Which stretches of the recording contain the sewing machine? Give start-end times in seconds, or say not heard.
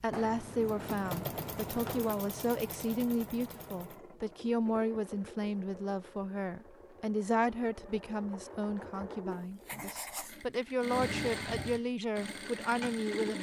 0.0-13.3.